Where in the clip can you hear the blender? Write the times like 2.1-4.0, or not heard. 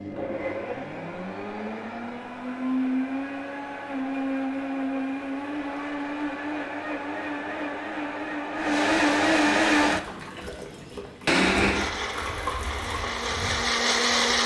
0.0-14.4.